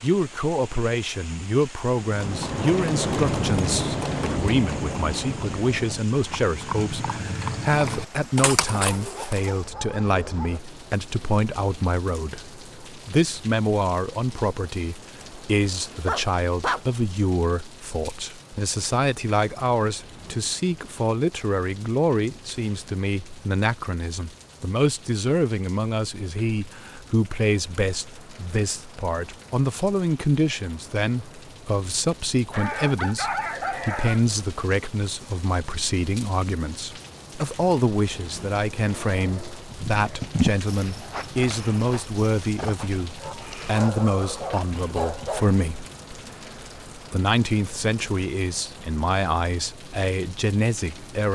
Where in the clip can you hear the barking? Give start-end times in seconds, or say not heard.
8.8-10.6, 16.1-16.9, 32.5-34.2, 43.2-45.6.